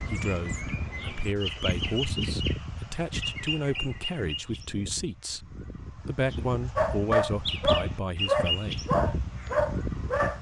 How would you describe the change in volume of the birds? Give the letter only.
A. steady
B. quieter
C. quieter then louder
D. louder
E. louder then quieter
C.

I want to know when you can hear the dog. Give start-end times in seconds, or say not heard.
6.8-10.3.